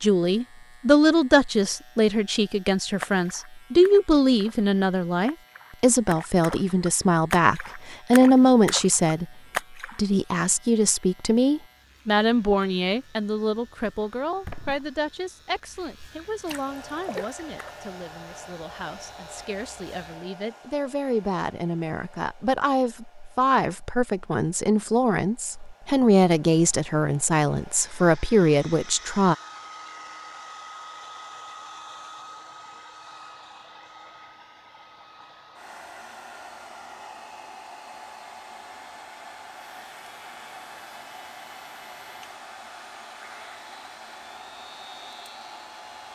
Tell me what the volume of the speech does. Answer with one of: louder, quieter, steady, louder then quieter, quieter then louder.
quieter then louder.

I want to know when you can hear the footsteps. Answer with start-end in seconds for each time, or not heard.
not heard.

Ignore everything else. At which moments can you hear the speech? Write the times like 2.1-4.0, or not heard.
0.0-9.2, 9.9-29.4.